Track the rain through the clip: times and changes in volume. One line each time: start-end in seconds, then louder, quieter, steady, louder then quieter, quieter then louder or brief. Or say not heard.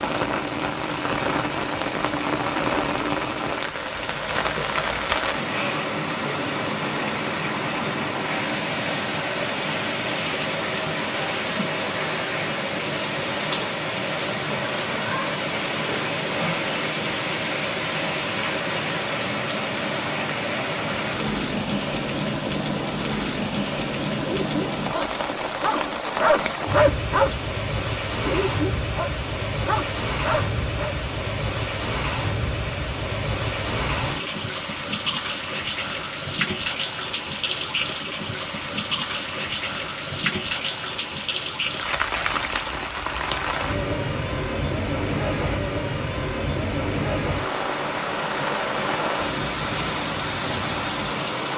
0.0-51.5 steady.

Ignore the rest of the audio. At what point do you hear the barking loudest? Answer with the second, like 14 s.
27 s.